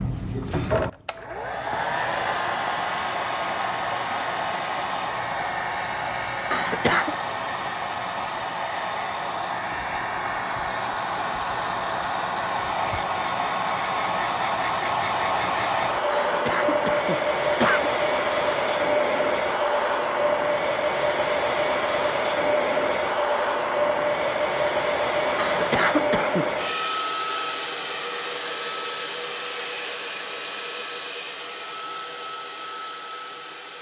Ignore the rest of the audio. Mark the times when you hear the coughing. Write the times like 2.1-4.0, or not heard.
6.5-7.2, 16.1-17.9, 25.4-26.6.